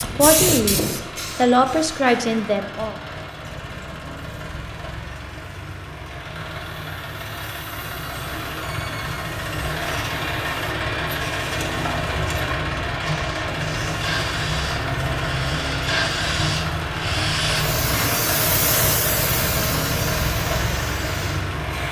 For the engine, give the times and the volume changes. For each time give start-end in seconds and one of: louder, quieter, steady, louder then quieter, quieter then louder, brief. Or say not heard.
0.0-21.8 louder.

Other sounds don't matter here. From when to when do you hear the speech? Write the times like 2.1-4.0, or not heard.
0.0-3.0.